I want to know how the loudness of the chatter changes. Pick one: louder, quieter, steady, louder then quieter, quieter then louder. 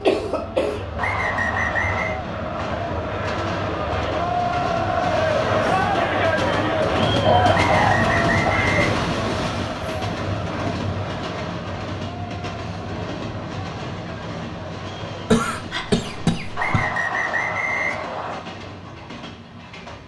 louder then quieter.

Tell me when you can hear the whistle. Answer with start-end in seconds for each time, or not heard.
0.9-2.2, 7.5-8.8, 16.6-18.4.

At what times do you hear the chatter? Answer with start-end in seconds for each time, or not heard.
0.1-15.4.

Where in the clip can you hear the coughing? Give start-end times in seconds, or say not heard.
0.0-0.8, 7.2-8.7, 15.3-16.7.